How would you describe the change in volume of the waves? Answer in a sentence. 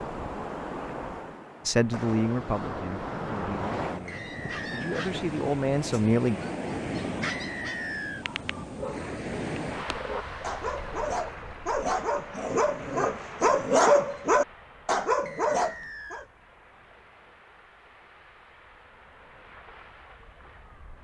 The loudness of the waves goes down.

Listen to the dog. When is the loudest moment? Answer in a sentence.
The loudest moment of the dog is at 14 seconds.